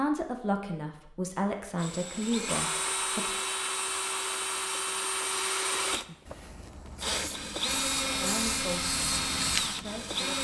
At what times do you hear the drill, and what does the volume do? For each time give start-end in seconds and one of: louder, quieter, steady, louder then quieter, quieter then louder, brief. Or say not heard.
1.8-10.3 steady.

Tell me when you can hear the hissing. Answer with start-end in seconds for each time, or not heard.
6.9-10.3.